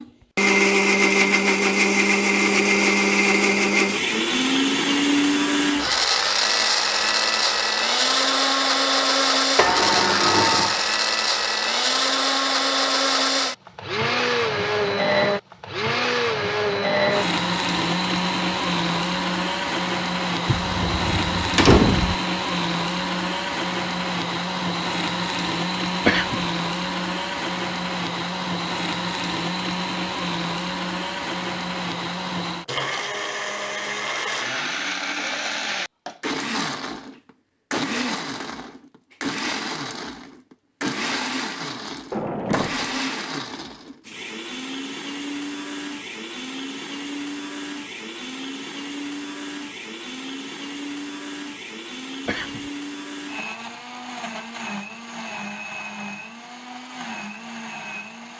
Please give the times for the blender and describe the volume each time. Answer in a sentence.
You can hear the blender from 0.0 to 58.3 s, getting quieter.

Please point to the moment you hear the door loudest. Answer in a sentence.
The loudest moment of the door is at 22 seconds.